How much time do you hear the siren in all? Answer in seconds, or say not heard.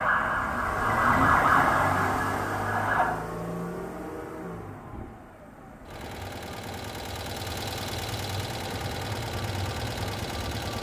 3 s.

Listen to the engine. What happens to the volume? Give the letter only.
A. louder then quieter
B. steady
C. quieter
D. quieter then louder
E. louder
D.